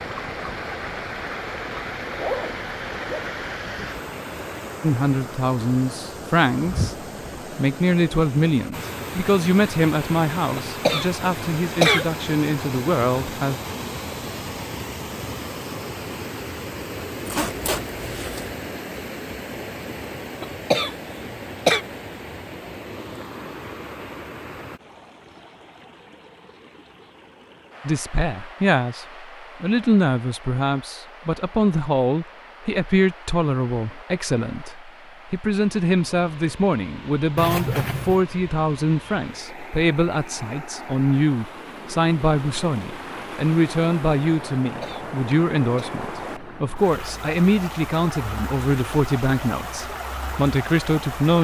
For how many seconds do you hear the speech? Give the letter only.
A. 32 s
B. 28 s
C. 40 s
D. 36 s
A.